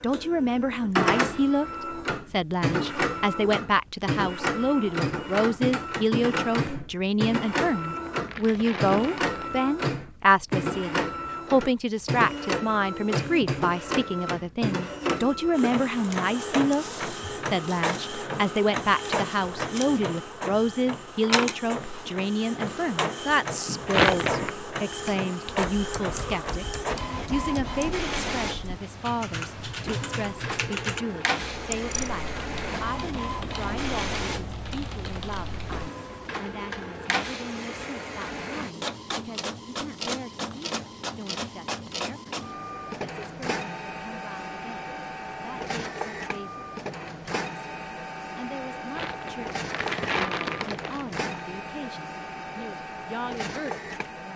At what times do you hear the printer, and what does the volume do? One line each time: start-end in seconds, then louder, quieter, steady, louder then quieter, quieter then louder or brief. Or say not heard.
0.0-54.3 quieter.